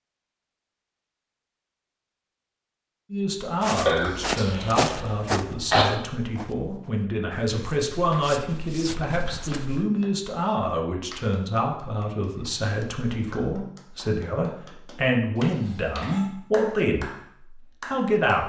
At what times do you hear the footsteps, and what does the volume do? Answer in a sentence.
The footsteps can be heard from 3.6 to 9.8 s, getting quieter then louder.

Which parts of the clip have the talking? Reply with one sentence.
You can hear the talking from 3.1 to 18.4 s.